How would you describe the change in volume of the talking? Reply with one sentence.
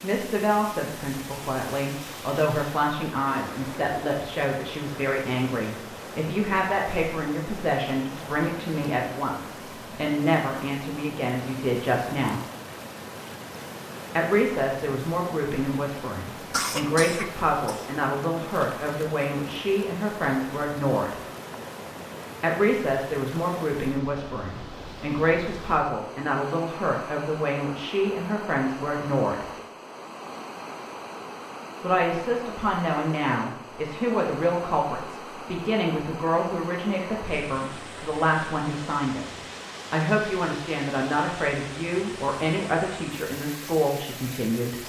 The loudness of the talking stays about the same.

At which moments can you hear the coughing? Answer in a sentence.
The coughing can be heard from 16.5 to 17.9 s.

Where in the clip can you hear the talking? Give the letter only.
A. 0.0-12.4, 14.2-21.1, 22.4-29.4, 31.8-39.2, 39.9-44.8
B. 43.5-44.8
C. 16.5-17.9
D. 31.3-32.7
A.